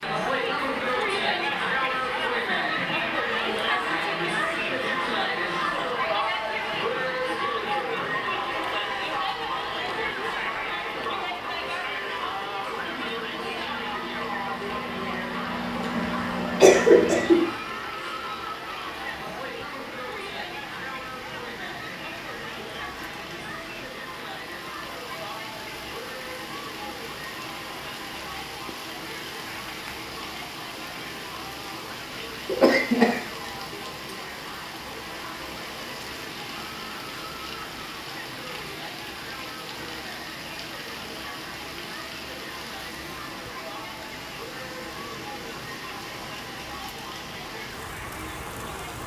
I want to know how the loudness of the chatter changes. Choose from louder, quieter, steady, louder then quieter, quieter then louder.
quieter.